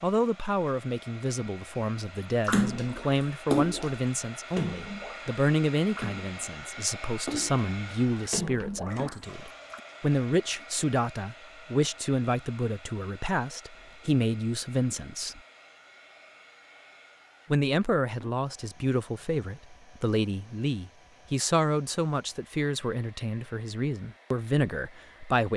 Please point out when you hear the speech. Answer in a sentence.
The speech can be heard from 0.0 to 15.4 s and from 17.5 to 25.5 s.